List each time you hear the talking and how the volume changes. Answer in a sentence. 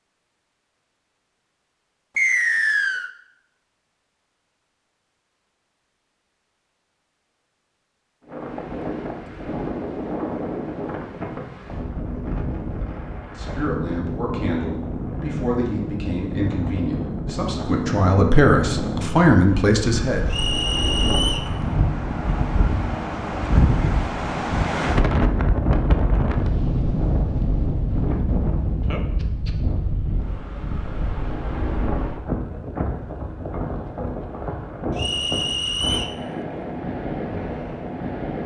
The talking can be heard from 13.2 to 20.2 s, getting louder.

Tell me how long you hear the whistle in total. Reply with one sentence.
You can hear the whistle for 3 seconds altogether.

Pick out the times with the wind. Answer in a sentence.
You can hear the wind from 8.2 to 38.4 s.